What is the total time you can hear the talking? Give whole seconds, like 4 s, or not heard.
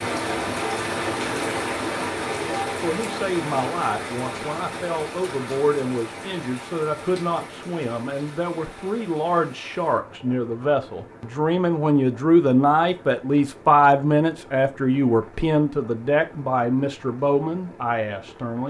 16 s.